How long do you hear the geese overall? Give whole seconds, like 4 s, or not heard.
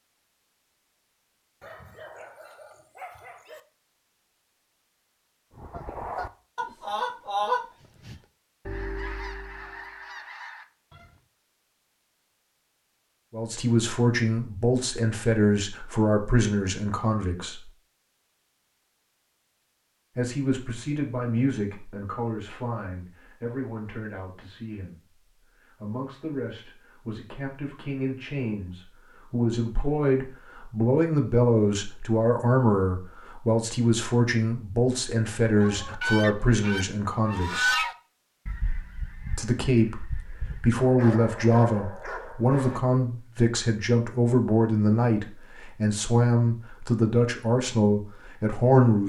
11 s.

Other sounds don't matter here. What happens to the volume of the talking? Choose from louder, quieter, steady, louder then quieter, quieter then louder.
quieter then louder.